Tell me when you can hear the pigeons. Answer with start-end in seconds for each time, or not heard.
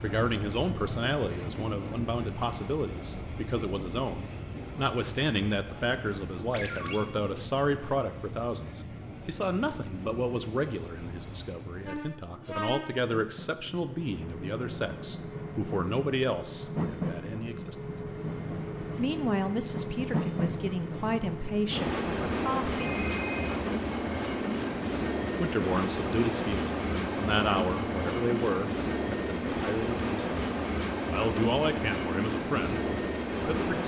not heard.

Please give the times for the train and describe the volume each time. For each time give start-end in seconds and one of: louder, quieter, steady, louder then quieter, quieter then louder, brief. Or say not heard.
0.0-33.8 louder.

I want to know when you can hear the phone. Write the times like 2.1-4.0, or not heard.
6.5-7.0, 22.8-23.6.